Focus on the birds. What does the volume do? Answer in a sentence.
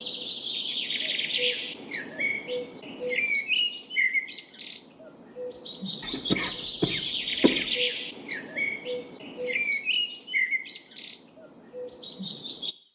The loudness of the birds stays about the same.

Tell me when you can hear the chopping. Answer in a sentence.
You can't hear the chopping here.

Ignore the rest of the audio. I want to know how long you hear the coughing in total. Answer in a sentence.
You can hear the coughing for 2 seconds altogether.